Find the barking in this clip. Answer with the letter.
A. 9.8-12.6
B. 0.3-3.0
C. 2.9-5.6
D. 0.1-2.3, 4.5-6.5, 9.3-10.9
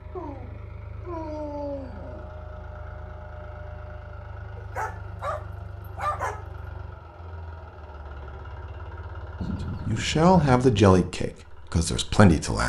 D.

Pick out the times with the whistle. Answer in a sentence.
You can't hear the whistle here.